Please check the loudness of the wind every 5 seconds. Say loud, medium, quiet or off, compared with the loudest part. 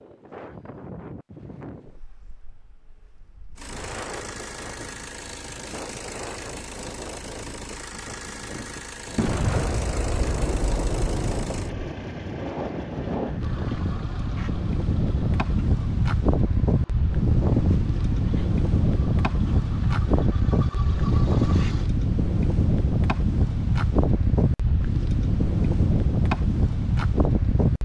quiet, quiet, medium, loud, loud, loud.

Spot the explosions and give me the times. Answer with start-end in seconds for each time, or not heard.
9.2-11.9.